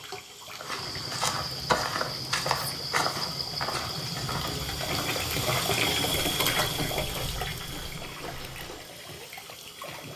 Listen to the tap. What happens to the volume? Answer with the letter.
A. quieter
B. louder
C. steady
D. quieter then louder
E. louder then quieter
E.